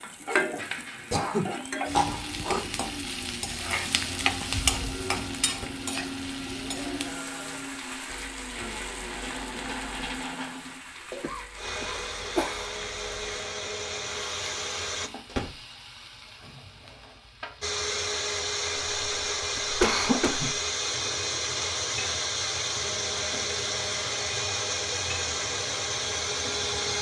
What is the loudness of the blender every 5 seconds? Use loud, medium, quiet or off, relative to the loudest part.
medium, medium, medium, loud, loud, loud.